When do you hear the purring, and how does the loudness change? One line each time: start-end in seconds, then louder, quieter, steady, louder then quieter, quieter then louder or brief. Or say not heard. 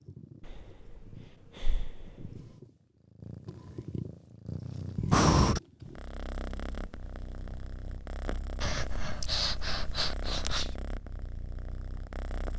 0.0-12.5 louder then quieter.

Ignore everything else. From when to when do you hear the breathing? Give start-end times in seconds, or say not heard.
0.4-2.4, 5.1-5.6, 8.6-10.8.